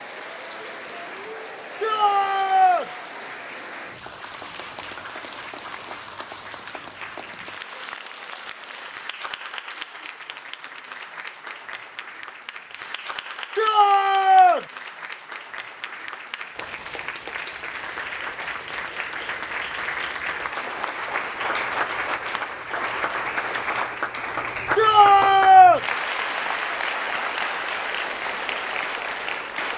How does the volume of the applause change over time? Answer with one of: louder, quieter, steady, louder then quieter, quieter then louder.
louder.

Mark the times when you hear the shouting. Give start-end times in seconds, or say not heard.
1.8-2.9, 13.6-14.6, 24.8-25.8.